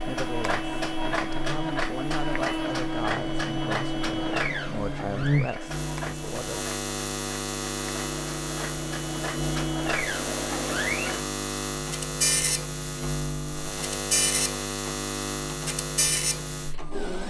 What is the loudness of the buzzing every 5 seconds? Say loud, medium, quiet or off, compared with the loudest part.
medium, loud, loud, loud.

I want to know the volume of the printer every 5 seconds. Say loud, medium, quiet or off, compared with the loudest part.
loud, medium, loud, loud.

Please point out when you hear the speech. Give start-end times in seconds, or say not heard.
0.0-6.7.